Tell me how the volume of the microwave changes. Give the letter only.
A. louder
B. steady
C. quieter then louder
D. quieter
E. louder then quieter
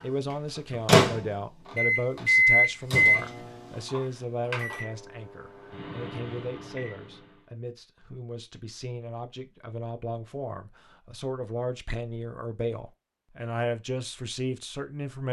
E.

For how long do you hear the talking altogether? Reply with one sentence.
The talking can be heard for 15 seconds in total.